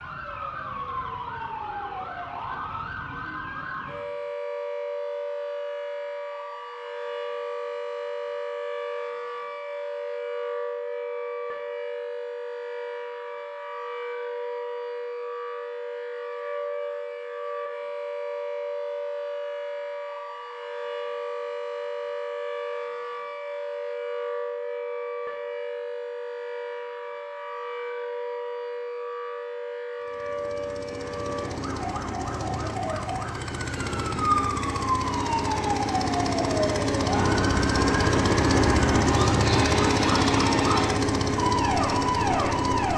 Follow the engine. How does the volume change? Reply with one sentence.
The loudness of the engine goes up.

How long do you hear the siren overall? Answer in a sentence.
You can hear the siren for 43 seconds altogether.